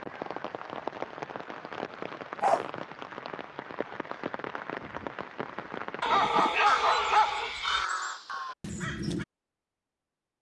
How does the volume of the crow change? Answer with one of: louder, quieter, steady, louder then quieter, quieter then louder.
louder then quieter.